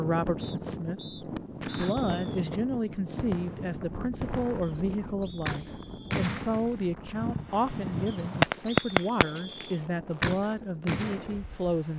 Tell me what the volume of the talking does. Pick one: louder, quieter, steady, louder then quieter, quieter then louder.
steady.